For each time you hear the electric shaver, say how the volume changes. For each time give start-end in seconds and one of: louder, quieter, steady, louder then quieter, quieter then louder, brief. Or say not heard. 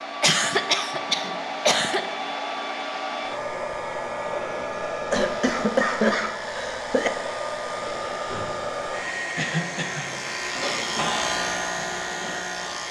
5.2-12.8 louder.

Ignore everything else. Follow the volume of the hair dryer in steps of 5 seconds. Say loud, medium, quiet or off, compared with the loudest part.
loud, loud, medium.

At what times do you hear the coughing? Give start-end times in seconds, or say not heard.
0.2-2.0, 5.1-7.1, 9.3-10.1.